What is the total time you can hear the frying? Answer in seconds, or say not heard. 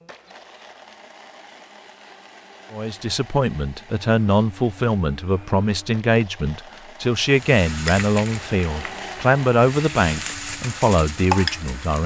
5 s.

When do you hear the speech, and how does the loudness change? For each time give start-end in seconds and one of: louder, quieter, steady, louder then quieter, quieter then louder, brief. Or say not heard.
2.7-12.0 steady.